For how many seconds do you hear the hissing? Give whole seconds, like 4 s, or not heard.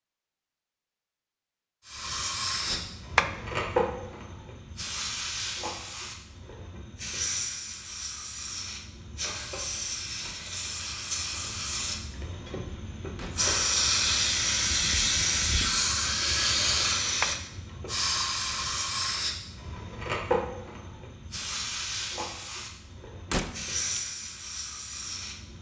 24 s.